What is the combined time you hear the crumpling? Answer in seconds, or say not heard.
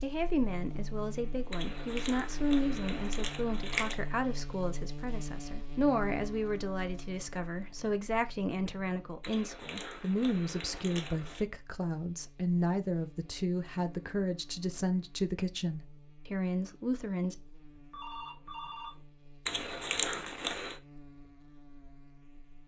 6 s.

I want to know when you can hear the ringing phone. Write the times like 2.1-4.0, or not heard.
17.8-19.1.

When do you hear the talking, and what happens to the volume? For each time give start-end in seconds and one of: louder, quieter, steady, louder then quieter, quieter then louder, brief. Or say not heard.
0.0-17.4 steady.